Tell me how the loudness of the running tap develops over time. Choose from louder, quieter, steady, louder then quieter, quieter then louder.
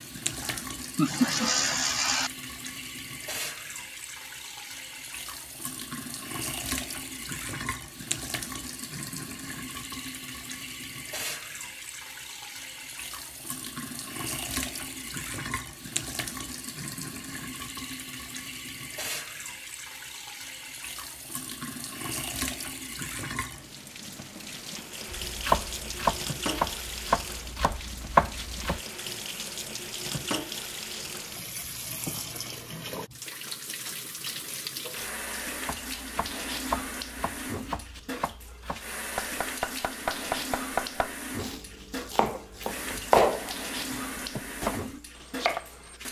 steady.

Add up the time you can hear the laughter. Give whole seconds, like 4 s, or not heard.
2 s.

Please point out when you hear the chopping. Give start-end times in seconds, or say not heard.
25.2-28.8, 35.6-46.0.